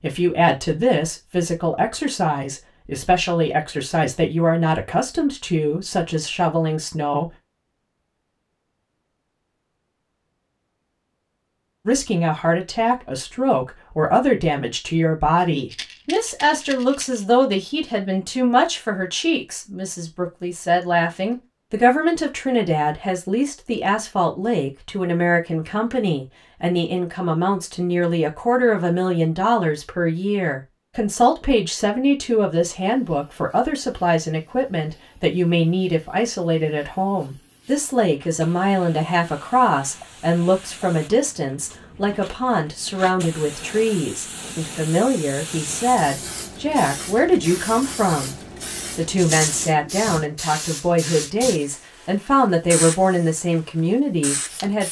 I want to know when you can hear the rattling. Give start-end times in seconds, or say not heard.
15.7-17.2, 49.1-49.8.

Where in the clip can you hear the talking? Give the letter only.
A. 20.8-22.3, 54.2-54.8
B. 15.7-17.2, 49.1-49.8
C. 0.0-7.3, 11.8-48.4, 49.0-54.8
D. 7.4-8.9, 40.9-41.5
C.